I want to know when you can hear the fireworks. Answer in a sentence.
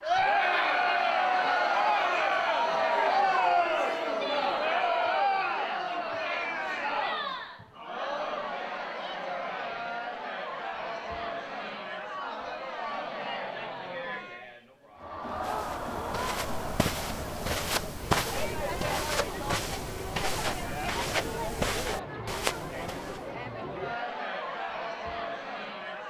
You can't hear the fireworks here.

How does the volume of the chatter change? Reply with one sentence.
The volume of the chatter goes down.